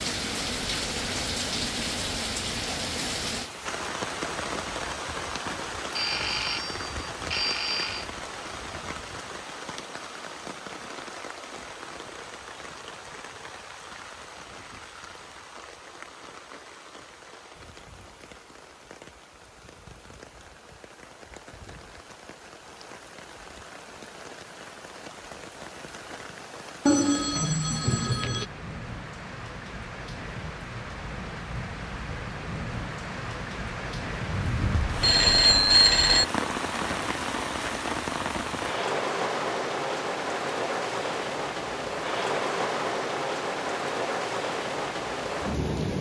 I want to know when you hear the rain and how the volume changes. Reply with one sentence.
The rain can be heard from 0.0 to 45.9 s, getting quieter then louder.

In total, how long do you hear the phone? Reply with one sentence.
The phone can be heard for 6 seconds in total.